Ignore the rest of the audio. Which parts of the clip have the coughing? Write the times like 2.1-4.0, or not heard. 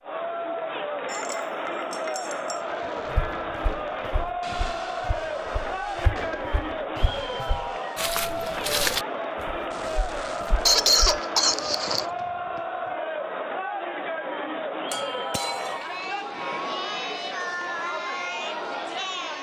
10.7-12.1.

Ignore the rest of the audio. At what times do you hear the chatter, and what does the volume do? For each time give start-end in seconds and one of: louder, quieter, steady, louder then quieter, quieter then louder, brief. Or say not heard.
0.0-19.3 steady.